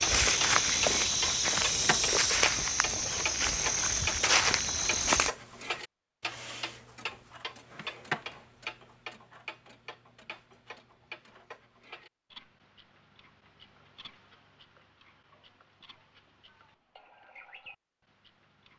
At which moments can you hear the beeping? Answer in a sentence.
You can't hear the beeping here.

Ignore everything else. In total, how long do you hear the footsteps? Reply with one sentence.
You can hear the footsteps for 5 seconds altogether.